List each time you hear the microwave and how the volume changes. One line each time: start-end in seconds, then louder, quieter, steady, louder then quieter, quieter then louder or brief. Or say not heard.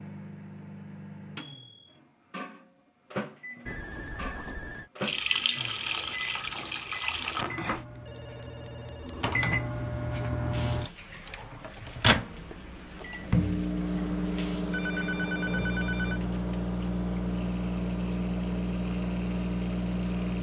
0.0-20.3 louder.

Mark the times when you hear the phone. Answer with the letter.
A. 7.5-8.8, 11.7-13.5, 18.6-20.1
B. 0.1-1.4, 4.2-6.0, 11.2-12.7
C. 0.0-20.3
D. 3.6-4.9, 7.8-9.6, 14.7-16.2
D.